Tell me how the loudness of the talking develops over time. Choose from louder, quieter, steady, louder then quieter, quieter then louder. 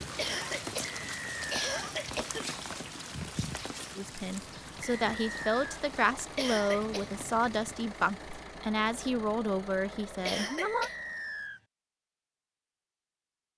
steady.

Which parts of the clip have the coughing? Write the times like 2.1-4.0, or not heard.
0.1-2.5, 6.3-7.1, 10.2-10.9.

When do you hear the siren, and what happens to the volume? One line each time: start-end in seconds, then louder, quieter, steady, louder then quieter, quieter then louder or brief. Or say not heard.
not heard.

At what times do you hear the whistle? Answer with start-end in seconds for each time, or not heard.
0.9-1.9, 4.8-5.8, 10.6-11.6.